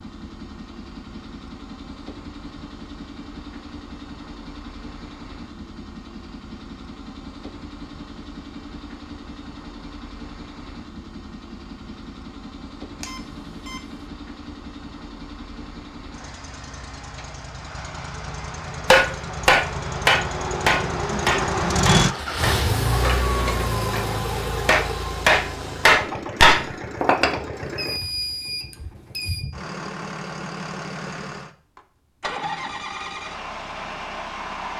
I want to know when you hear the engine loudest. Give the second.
22 s.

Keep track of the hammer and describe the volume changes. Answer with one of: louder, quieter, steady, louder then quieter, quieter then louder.
quieter then louder.